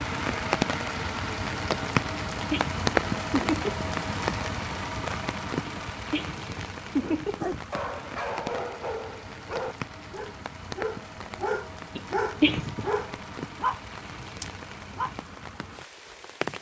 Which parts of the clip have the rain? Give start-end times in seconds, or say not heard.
0.0-16.5.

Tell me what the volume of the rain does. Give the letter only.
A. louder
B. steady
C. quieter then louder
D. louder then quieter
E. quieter
E.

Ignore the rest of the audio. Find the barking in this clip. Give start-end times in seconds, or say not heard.
6.9-15.1.